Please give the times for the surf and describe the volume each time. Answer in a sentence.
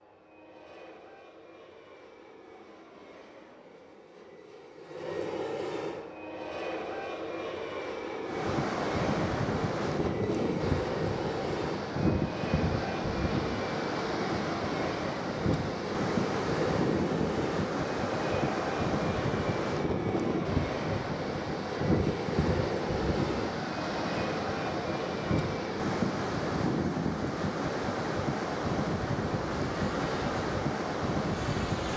You can hear the surf from 8.2 to 31.9 s, at a steady volume.